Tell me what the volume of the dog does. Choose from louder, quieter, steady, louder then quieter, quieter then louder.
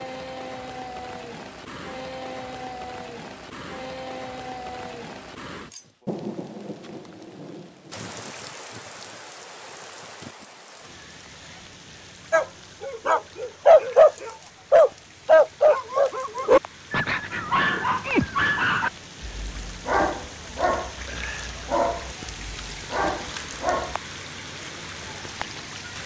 quieter.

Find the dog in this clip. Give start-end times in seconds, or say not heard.
12.3-23.9.